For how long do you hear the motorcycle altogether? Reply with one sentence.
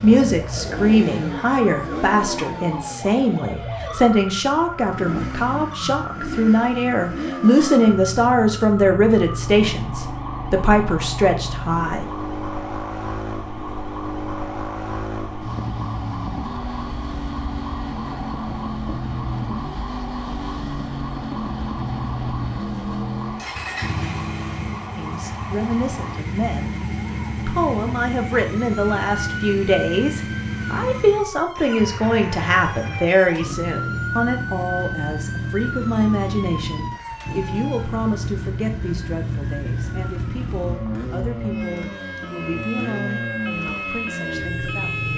You can hear the motorcycle for 45 seconds altogether.